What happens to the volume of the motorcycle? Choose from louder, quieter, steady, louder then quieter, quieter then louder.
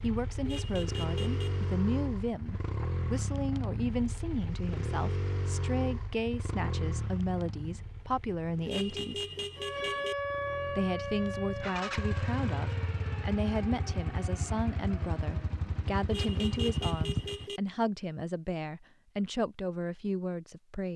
quieter then louder.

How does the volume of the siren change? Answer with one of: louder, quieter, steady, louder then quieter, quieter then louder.
quieter.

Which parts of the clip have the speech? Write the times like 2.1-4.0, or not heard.
0.0-9.2, 10.7-20.9.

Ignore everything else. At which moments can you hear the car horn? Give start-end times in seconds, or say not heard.
0.5-1.7, 8.7-10.2, 16.1-17.6.